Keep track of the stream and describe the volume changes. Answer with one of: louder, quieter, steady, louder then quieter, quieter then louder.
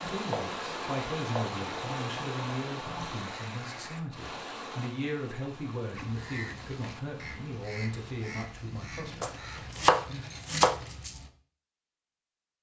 quieter.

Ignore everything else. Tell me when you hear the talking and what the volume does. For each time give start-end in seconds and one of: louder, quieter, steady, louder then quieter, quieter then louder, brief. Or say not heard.
0.0-9.5 steady.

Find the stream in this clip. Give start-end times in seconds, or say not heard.
0.0-8.6.